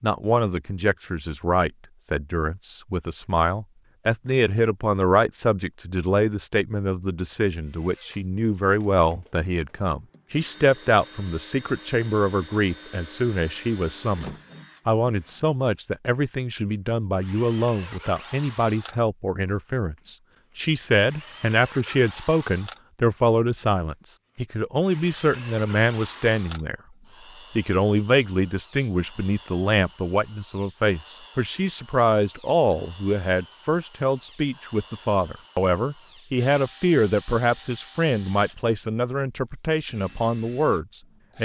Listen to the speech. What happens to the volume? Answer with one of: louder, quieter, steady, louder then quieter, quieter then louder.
steady.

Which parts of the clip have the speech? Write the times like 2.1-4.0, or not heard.
0.0-26.8, 27.6-41.4.